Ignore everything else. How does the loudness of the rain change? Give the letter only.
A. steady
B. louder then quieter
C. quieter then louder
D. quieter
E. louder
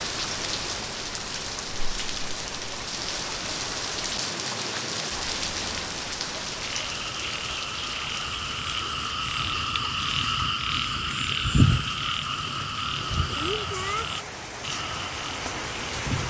C.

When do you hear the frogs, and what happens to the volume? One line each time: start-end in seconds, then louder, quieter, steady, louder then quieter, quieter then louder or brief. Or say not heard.
6.5-16.2 louder then quieter.